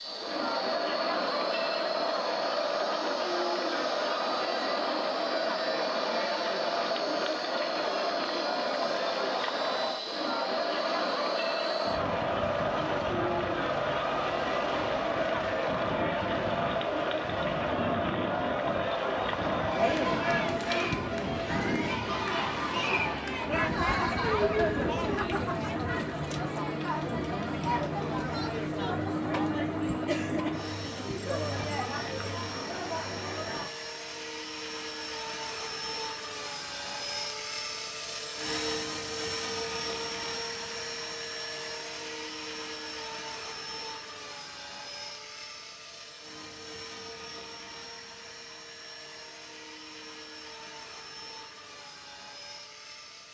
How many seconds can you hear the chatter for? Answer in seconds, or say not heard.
34 s.